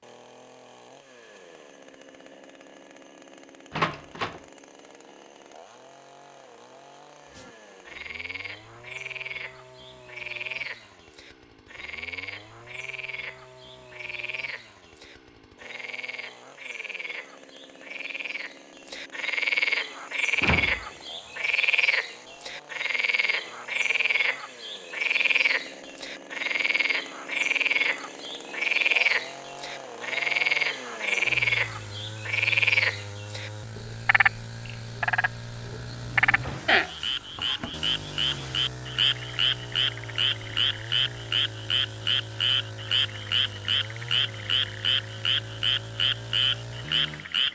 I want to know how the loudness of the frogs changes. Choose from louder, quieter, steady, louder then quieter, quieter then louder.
louder.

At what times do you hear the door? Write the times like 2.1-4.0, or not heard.
3.7-4.4, 20.4-21.4, 35.9-36.8.